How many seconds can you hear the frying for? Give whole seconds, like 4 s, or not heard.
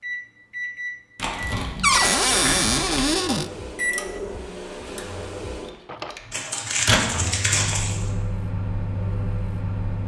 not heard.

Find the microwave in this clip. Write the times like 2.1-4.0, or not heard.
0.0-10.0.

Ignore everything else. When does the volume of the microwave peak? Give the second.
7 s.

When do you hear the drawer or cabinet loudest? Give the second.
2 s.